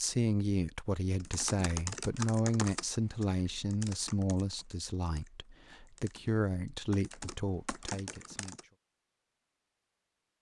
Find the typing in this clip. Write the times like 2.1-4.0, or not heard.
1.2-8.7.